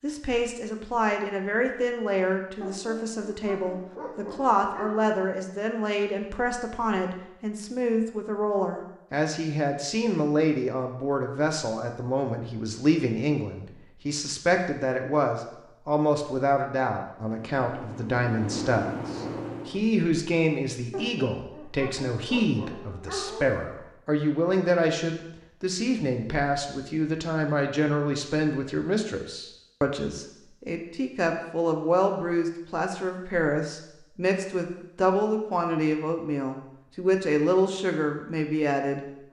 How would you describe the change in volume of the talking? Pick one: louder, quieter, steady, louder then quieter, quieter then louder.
steady.